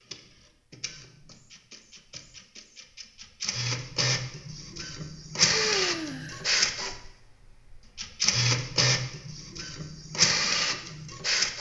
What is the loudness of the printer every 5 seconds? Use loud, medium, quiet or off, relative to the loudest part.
medium, loud, loud.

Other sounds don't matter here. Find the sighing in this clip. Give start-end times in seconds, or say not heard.
5.5-6.5.